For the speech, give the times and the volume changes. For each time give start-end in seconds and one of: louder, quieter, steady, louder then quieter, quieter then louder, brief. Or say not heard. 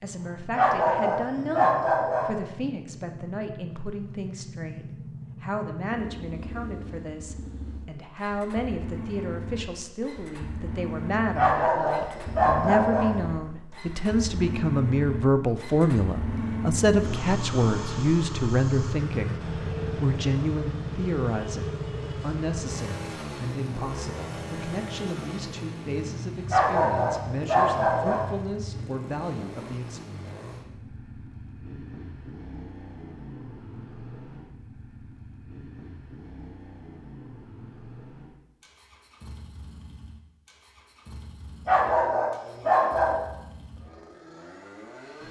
0.0-30.0 louder then quieter.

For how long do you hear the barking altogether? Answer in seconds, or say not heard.
7 s.